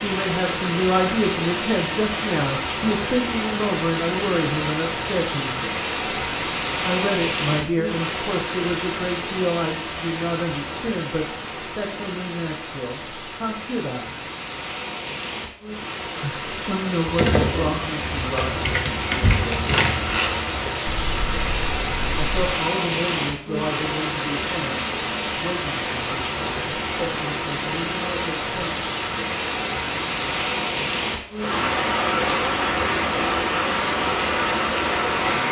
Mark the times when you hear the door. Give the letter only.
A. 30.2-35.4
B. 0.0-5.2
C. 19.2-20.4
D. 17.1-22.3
C.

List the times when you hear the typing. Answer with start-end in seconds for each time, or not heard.
17.1-22.3.